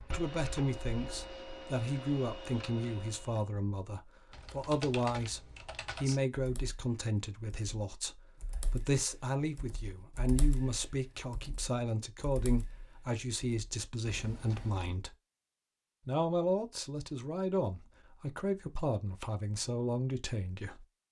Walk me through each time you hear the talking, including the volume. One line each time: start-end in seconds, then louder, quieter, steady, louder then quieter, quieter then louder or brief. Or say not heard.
0.1-15.2 steady
16.1-20.9 steady.